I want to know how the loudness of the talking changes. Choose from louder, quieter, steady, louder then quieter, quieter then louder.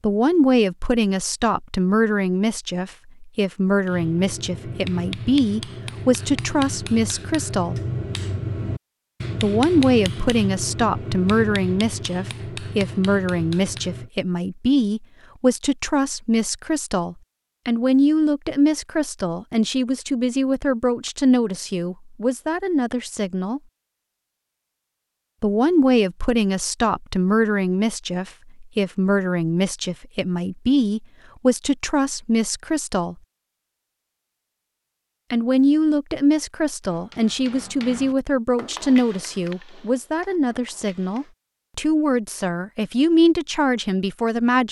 steady.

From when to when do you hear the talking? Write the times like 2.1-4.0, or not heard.
0.0-7.8, 9.4-23.6, 25.4-33.1, 35.3-44.6.